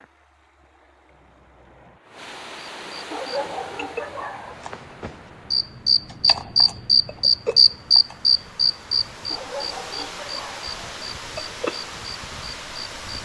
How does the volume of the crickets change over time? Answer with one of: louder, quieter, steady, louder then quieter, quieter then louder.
louder then quieter.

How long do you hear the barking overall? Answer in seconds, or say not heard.
3 s.